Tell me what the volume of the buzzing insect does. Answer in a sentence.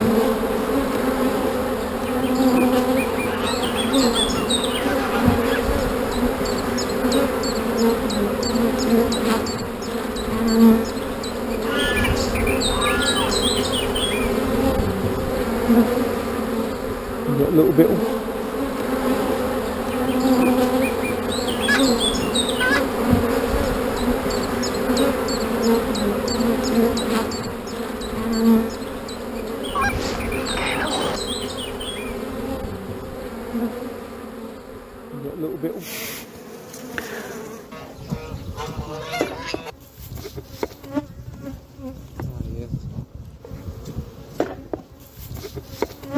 The volume of the buzzing insect goes down.